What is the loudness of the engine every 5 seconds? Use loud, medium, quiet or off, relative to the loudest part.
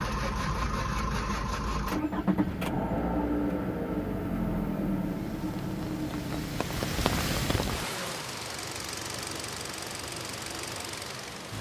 loud, medium, medium.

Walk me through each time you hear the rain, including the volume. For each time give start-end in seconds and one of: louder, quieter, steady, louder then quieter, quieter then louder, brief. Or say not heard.
5.0-11.5 louder then quieter.